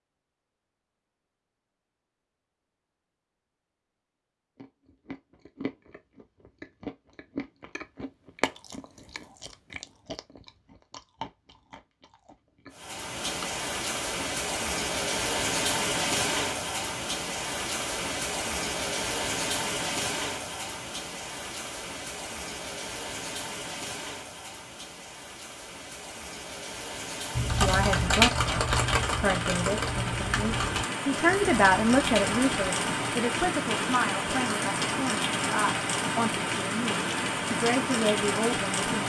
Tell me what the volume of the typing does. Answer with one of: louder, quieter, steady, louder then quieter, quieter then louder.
quieter.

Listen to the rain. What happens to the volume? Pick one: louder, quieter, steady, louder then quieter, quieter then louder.
quieter then louder.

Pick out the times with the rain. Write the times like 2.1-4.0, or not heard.
12.8-39.0.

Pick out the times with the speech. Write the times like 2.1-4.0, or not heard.
27.5-39.0.